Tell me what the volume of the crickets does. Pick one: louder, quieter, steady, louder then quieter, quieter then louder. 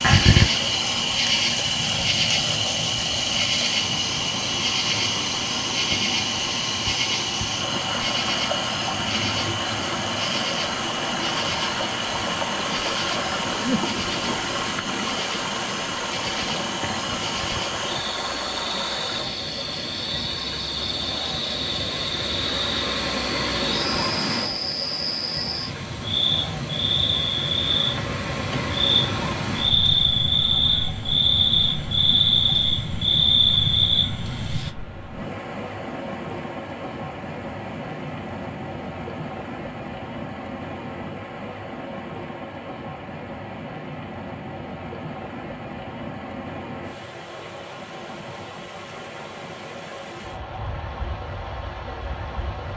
quieter then louder.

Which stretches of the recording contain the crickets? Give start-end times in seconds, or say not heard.
0.0-34.7.